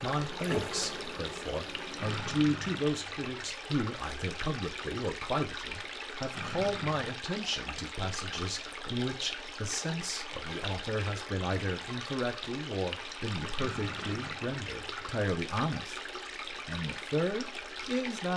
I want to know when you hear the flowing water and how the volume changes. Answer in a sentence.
You can hear the flowing water from 0.0 to 18.3 s, at a steady volume.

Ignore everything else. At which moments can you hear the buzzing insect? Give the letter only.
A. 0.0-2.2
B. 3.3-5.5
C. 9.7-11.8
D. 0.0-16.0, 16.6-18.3
A.